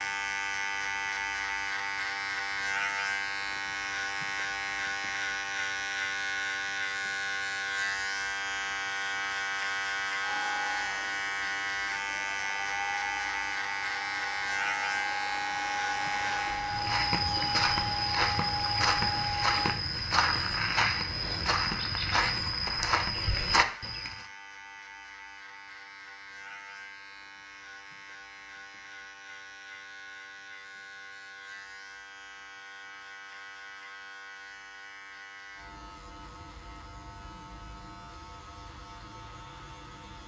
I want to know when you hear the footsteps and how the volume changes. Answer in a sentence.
You can hear the footsteps from 15.9 to 24.2 s, at a steady volume.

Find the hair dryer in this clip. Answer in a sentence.
You can hear the hair dryer from 10.2 to 19.8 s.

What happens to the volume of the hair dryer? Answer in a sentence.
The volume of the hair dryer goes up.